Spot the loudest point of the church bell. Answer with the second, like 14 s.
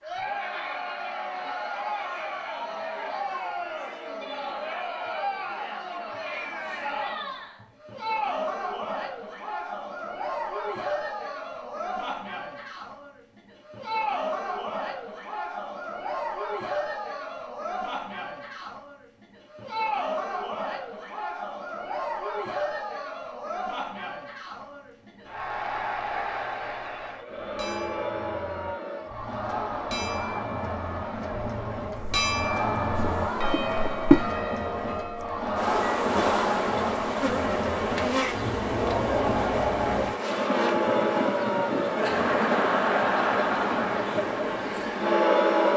32 s.